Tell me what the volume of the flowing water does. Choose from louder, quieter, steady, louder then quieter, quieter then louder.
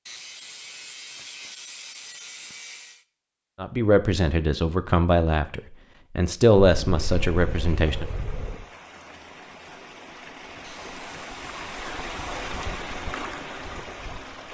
louder.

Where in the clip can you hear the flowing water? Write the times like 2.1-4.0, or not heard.
7.0-14.4.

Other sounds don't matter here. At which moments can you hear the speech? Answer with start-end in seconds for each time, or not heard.
3.6-8.1.